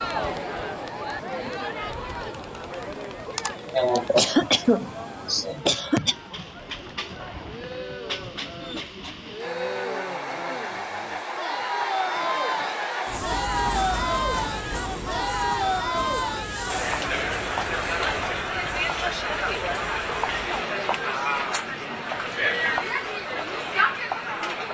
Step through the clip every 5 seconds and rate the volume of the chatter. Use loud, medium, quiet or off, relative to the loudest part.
medium, medium, loud, loud, loud.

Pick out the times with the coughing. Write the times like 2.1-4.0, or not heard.
3.4-6.2.